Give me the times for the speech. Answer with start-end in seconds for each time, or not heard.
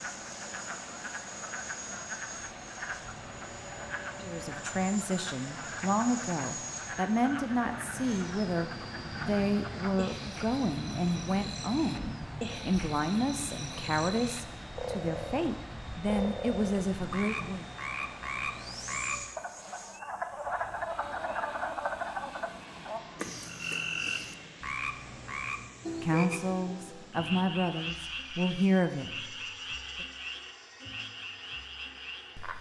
4.2-17.6, 26.0-30.1.